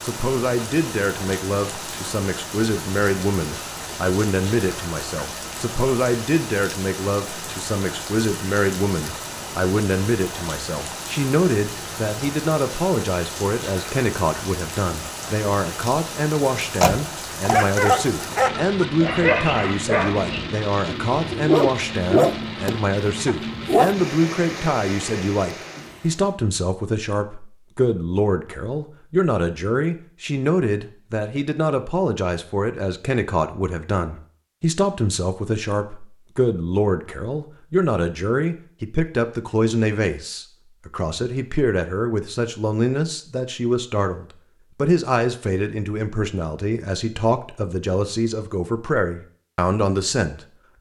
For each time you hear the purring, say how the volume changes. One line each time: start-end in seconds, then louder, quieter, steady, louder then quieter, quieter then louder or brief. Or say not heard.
not heard.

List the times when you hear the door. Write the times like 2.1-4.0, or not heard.
16.8-17.9.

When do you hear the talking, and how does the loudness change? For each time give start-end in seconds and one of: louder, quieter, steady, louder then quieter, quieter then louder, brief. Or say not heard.
0.0-50.5 steady.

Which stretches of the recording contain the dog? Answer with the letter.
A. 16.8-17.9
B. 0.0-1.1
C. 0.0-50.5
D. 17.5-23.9
D.